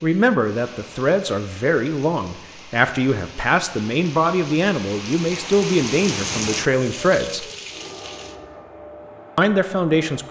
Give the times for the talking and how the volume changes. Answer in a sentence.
You can hear the talking from 0.0 to 7.5 s, at a steady volume; and briefly from 9.3 to 10.2 s.